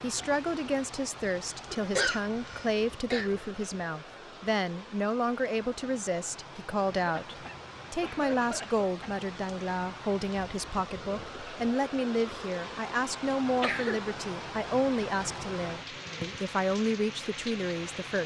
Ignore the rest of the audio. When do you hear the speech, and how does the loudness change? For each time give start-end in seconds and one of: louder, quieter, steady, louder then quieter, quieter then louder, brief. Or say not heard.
0.0-18.2 steady.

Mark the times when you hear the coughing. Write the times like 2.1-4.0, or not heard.
1.7-3.3, 7.0-9.2, 13.6-14.1.